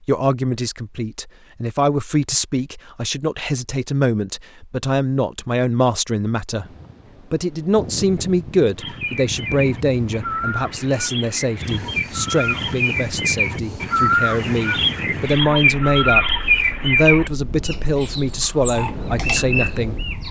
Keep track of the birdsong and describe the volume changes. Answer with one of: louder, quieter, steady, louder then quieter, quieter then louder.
louder then quieter.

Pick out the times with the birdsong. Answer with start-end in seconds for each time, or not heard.
8.8-20.2.